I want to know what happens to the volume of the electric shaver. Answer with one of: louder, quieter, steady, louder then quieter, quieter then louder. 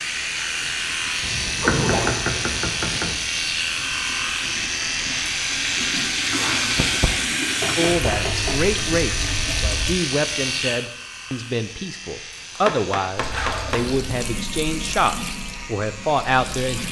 quieter.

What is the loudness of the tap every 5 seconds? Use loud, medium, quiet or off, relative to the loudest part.
medium, loud, medium, medium.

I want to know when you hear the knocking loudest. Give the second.
2 s.